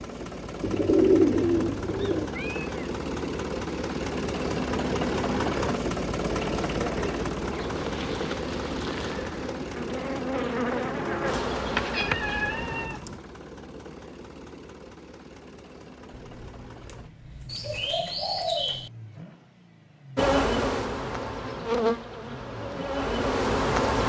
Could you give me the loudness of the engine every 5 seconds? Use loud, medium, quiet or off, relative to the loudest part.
loud, loud, medium, quiet, quiet.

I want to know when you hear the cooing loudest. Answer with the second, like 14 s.
1 s.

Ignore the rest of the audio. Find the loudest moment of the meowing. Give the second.
12 s.